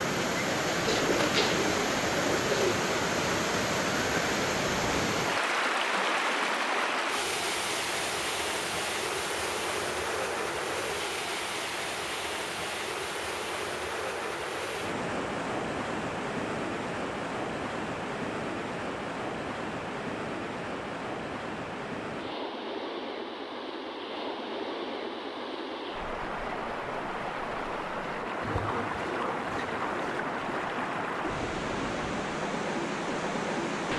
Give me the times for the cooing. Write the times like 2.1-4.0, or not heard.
0.7-2.8, 28.4-30.2.